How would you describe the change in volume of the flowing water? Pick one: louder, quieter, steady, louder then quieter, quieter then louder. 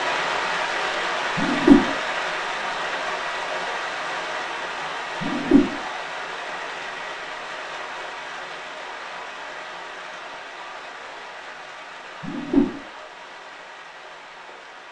quieter.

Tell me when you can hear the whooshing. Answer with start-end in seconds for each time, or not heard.
1.4-1.9, 5.2-5.7, 12.2-12.7.